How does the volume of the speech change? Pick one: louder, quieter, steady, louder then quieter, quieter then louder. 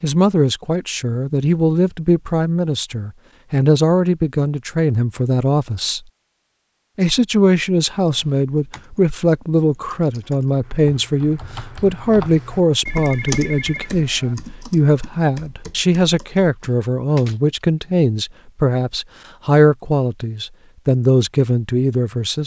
steady.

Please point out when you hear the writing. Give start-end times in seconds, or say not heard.
not heard.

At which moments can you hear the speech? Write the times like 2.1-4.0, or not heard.
0.0-6.0, 7.0-22.4.